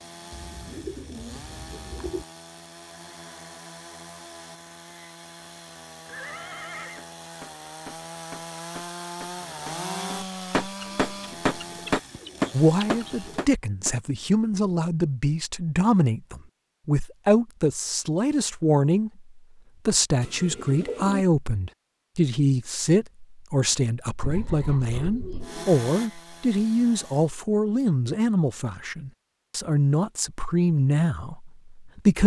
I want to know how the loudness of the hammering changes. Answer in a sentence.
The volume of the hammering goes up.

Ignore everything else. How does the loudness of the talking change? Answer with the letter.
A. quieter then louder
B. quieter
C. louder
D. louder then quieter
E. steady
E.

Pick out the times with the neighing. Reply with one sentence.
You can hear the neighing from 6.0 to 7.0 s.